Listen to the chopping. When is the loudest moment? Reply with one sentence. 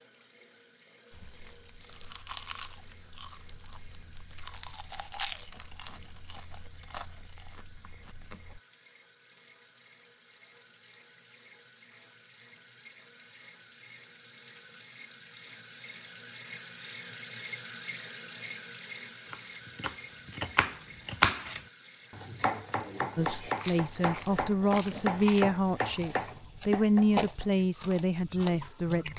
The loudest moment of the chopping is at 21 seconds.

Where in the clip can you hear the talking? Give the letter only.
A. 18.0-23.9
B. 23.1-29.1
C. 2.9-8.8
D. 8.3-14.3
B.